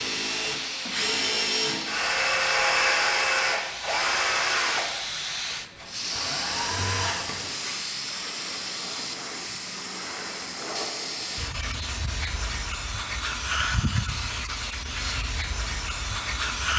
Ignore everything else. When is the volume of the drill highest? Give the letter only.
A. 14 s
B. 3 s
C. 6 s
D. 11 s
B.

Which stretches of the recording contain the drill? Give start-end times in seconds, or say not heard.
0.0-7.5.